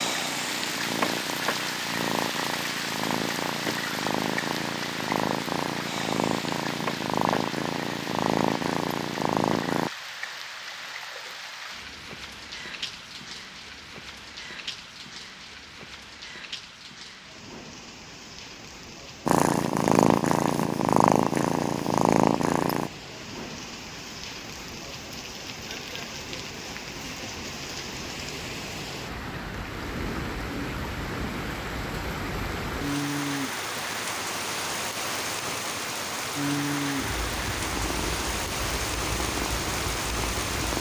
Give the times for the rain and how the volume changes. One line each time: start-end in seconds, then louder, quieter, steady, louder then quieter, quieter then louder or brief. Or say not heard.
0.0-40.7 quieter then louder.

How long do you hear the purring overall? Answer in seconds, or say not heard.
17 s.